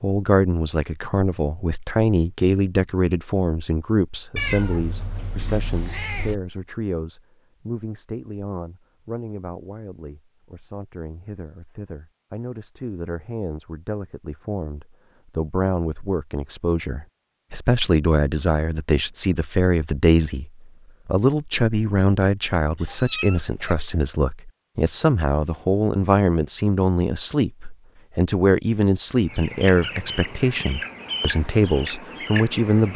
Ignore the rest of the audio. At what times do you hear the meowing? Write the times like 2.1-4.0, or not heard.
4.3-6.3, 22.8-23.9.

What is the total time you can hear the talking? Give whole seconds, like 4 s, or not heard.
33 s.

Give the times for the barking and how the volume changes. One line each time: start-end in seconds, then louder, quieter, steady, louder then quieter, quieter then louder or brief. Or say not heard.
not heard.